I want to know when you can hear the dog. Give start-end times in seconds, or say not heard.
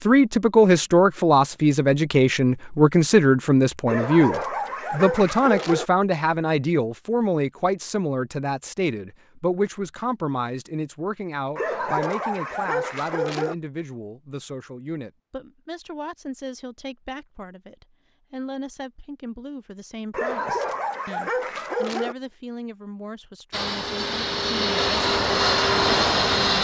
3.9-5.8, 11.6-13.6, 20.1-22.1.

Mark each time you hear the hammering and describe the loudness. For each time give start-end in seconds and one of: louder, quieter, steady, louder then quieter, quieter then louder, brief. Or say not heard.
not heard.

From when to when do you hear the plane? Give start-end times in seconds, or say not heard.
23.5-26.5.